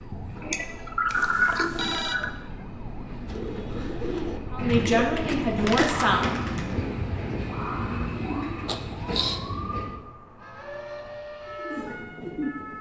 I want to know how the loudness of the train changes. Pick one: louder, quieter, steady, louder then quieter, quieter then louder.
louder then quieter.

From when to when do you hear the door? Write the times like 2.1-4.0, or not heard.
not heard.